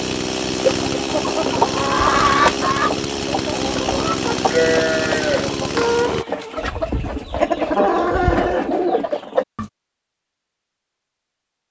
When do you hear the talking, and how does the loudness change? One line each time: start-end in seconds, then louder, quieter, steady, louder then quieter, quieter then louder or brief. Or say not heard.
not heard.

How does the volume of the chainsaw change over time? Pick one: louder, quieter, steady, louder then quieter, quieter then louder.
steady.